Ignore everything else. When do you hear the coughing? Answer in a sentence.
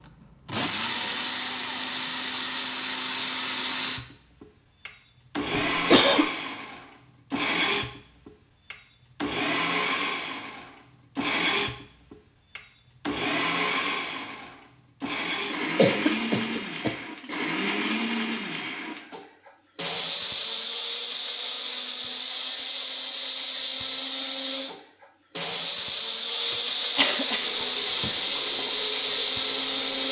The coughing can be heard from 5.5 to 6.3 s, from 15.8 to 16.9 s and from 26.5 to 28.1 s.